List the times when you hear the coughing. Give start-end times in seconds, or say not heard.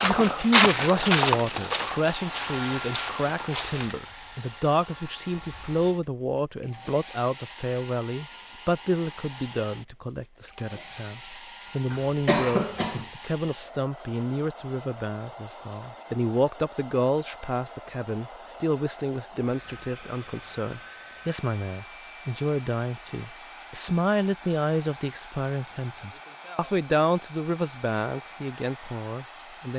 11.9-13.1.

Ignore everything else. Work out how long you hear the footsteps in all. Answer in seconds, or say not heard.
4 s.